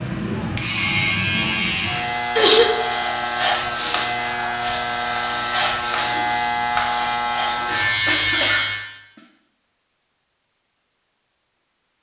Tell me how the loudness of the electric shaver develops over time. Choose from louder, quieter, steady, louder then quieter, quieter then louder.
steady.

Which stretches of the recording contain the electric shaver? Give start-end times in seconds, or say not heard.
0.0-8.8.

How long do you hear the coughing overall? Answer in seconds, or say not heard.
2 s.